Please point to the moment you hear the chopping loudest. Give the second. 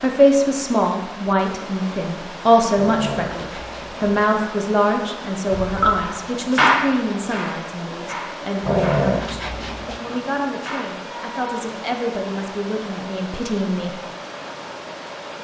7 s.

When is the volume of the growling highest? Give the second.
9 s.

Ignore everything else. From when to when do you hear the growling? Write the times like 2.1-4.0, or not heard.
2.7-4.0, 8.6-10.0.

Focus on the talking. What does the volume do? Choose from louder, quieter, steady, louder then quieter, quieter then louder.
quieter.